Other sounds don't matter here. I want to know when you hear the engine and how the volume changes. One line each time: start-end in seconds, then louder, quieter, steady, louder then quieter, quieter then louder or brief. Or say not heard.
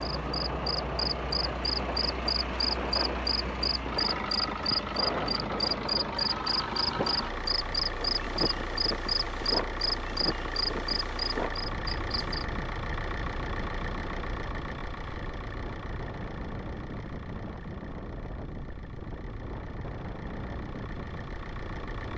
0.0-22.1 quieter.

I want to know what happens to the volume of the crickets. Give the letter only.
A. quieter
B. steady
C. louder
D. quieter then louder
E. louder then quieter
B.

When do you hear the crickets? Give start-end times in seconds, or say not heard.
0.0-12.4.